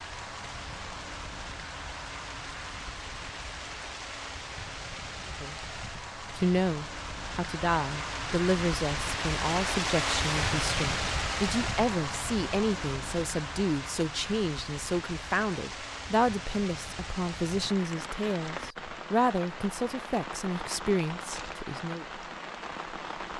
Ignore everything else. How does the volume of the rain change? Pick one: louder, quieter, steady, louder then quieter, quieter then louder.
louder then quieter.